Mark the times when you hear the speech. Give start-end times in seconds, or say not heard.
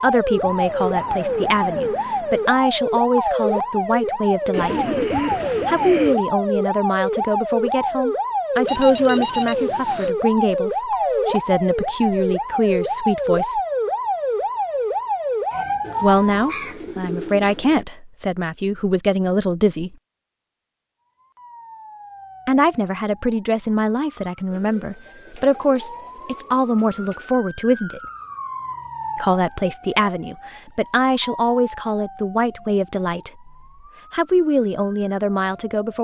0.0-5.0, 5.7-13.6, 16.0-19.9, 22.4-28.0, 29.1-33.5, 34.1-35.9.